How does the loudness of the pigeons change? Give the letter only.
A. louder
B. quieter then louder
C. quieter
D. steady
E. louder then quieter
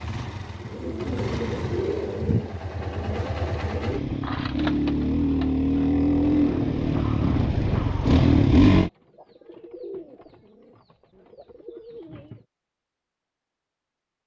C.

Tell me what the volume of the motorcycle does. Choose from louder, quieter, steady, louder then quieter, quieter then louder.
louder.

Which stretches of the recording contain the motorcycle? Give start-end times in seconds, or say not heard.
0.0-8.9.